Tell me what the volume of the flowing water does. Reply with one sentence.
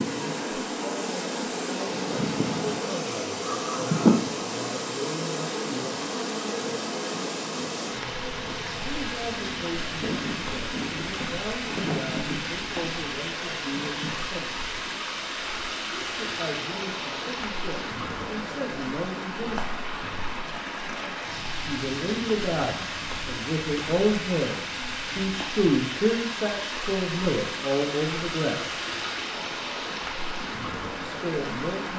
The volume of the flowing water stays about the same.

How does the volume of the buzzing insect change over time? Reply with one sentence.
The volume of the buzzing insect goes up, then down.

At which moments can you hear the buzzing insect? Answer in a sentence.
You can hear the buzzing insect from 0.0 to 14.2 s.